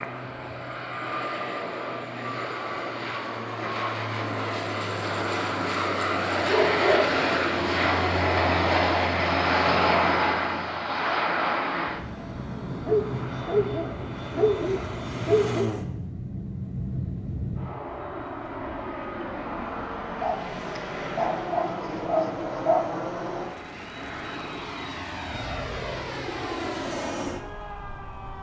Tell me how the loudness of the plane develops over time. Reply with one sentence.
The loudness of the plane goes up, then down.